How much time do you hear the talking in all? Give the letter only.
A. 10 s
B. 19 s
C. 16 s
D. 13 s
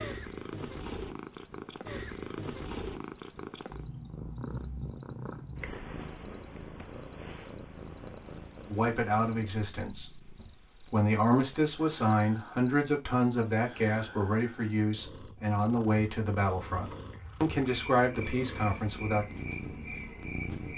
A.